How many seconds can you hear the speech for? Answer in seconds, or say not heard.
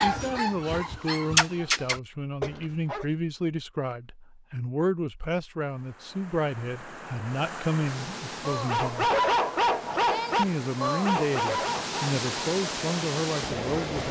13 s.